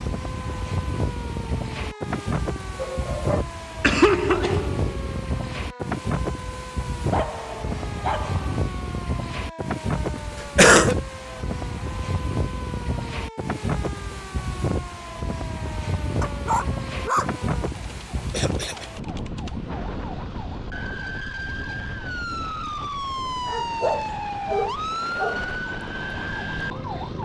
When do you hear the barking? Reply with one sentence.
You can hear the barking from 2.8 to 3.5 s, from 7.1 to 8.6 s, from 16.2 to 17.4 s and from 23.4 to 25.4 s.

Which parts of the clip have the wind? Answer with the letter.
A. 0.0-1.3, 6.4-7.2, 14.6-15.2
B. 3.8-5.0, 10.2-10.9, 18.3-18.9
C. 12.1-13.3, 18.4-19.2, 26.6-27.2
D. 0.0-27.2
D.